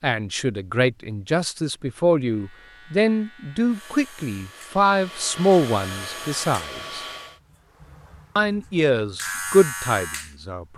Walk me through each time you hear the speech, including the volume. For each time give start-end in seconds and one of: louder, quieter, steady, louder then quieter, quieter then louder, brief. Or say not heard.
0.0-7.0 steady
8.3-10.7 brief.